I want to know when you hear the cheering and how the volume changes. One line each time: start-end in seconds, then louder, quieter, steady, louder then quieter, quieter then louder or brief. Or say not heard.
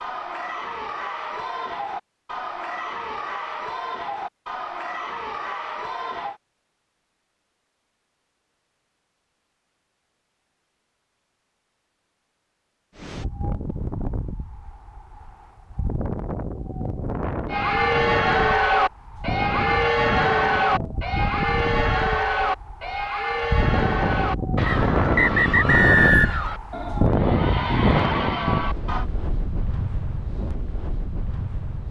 0.0-6.4 steady
17.5-29.1 quieter.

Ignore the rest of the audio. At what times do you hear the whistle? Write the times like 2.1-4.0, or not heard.
24.6-26.4.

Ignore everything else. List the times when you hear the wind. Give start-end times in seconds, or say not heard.
12.9-31.8.